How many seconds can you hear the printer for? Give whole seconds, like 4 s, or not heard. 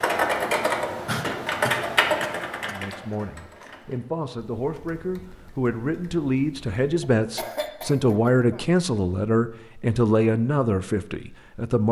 not heard.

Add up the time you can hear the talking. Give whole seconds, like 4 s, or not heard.
9 s.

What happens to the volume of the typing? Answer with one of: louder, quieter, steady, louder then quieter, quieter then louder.
quieter.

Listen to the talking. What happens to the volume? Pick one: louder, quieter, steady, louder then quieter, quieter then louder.
louder.